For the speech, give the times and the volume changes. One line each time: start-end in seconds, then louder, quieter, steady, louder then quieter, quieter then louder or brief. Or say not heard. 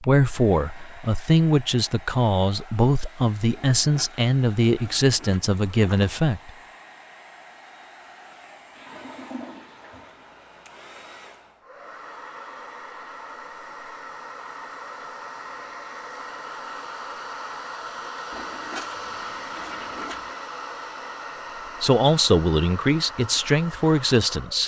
0.0-6.5 steady
21.8-24.6 brief.